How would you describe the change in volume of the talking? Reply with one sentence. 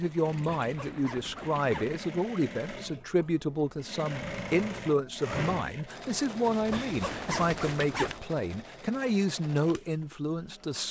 The volume of the talking stays about the same.